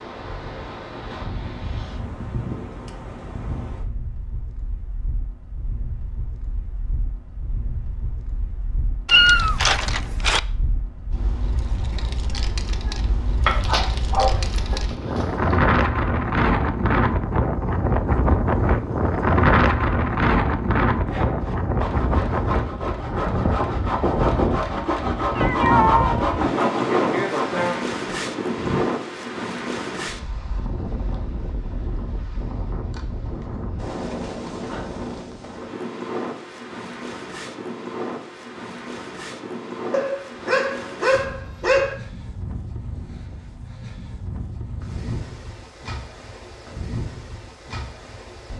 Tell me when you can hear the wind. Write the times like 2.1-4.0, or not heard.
0.0-48.5.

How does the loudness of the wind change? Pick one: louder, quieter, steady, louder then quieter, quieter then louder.
louder then quieter.